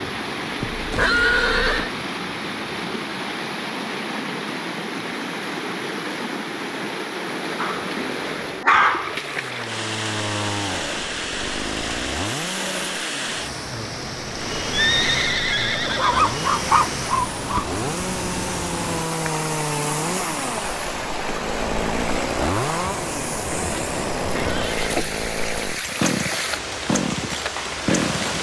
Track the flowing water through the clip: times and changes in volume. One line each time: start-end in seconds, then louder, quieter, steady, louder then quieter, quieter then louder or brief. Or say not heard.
0.0-28.3 steady.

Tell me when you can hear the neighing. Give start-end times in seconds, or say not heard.
0.6-1.9, 14.7-16.4, 23.5-24.9.